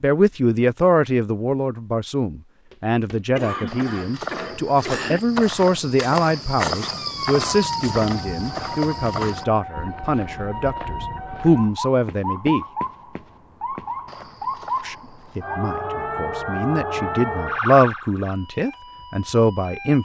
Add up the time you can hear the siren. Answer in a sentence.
The siren can be heard for 13 seconds in total.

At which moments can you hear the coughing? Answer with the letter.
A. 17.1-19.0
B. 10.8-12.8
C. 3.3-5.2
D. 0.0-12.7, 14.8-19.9
C.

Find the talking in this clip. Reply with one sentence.
The talking can be heard from 0.0 to 12.7 s and from 14.8 to 19.9 s.